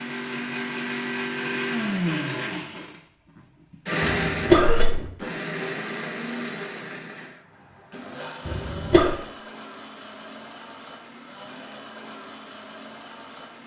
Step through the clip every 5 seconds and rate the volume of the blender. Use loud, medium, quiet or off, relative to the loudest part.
loud, medium, quiet.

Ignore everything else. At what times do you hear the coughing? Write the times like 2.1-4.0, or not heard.
4.0-5.0, 8.4-9.2.